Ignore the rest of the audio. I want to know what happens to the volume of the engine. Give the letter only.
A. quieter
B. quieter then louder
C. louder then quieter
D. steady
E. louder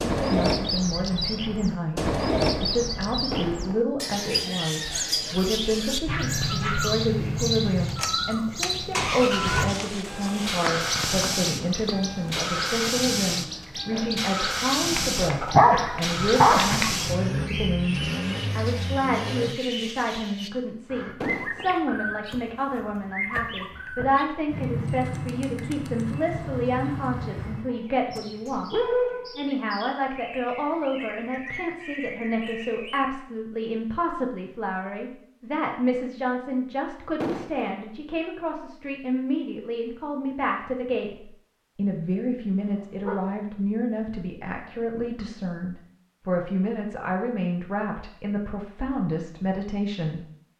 D.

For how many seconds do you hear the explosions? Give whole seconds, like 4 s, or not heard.
2 s.